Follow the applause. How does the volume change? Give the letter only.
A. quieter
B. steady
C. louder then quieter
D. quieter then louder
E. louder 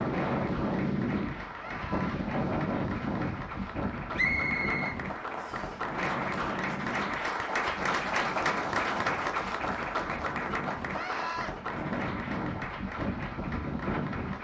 C.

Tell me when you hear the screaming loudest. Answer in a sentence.
The volume of the screaming peaks at 11 seconds.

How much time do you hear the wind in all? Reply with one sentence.
The wind can be heard for 14 seconds in total.